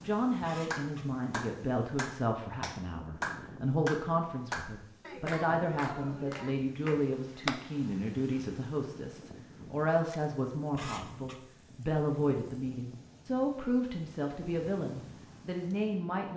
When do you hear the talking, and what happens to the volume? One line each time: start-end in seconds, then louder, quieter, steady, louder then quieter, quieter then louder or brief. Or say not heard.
0.0-16.3 steady.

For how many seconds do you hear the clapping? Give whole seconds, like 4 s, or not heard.
7 s.